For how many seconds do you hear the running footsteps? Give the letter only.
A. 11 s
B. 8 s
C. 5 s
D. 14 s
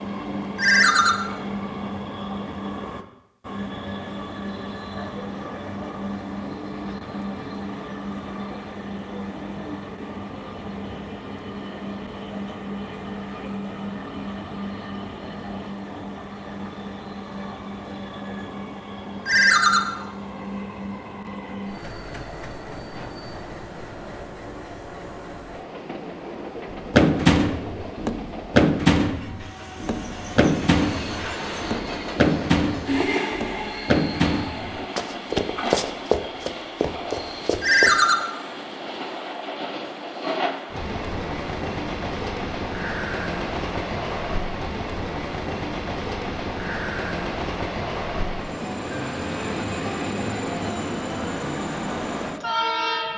A.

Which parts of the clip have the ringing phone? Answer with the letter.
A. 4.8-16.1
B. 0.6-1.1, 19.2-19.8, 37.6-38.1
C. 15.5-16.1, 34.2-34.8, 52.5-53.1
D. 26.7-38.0
B.